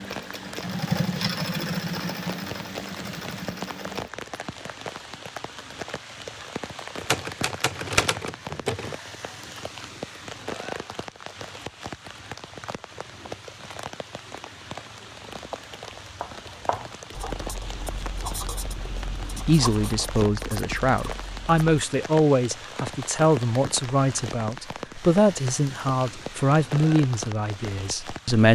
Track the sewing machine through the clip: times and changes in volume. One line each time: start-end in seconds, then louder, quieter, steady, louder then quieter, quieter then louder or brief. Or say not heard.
0.0-4.1 quieter.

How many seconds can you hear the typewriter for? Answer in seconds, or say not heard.
2 s.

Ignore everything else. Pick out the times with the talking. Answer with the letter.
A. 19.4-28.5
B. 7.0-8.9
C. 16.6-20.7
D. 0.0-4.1
A.